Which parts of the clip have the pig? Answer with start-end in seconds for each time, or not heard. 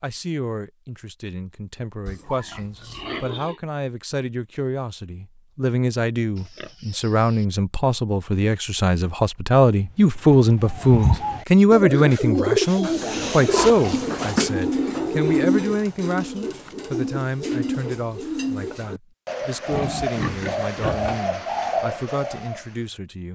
2.0-3.6, 6.3-7.5, 12.8-14.3, 19.7-21.2.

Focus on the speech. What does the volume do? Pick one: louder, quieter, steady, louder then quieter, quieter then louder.
louder then quieter.